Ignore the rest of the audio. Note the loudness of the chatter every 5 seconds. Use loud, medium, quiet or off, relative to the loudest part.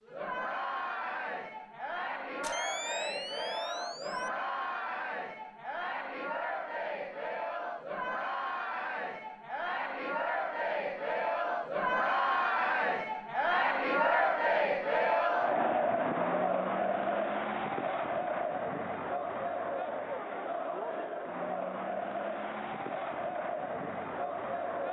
medium, medium, loud, loud, medium.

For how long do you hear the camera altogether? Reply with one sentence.
You can hear the camera for 2 seconds altogether.